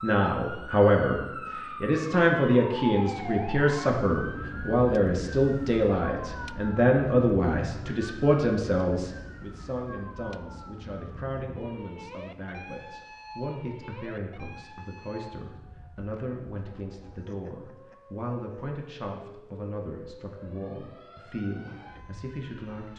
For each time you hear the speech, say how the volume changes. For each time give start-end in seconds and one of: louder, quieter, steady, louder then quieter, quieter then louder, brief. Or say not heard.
0.0-22.9 quieter.